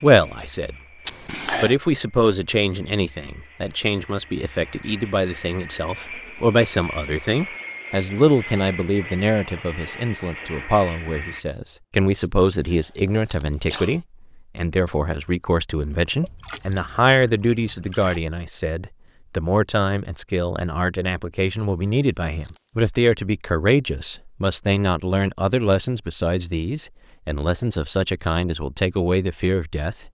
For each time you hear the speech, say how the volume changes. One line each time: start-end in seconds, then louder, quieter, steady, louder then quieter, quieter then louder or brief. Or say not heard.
0.0-0.8 brief
1.6-30.1 steady.